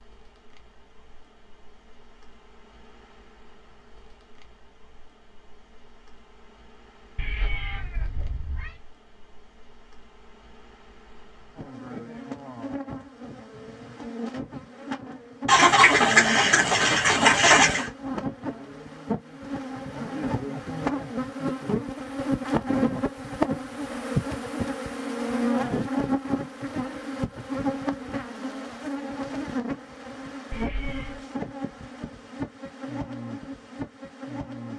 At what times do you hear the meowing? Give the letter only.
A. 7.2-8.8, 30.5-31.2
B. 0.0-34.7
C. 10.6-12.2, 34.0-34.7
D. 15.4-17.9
A.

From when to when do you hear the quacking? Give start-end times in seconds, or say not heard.
15.4-17.9.